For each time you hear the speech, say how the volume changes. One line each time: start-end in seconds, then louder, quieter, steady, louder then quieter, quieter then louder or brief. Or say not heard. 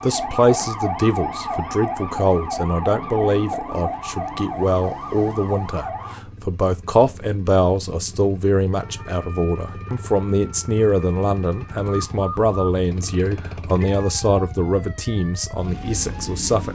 0.0-16.7 steady.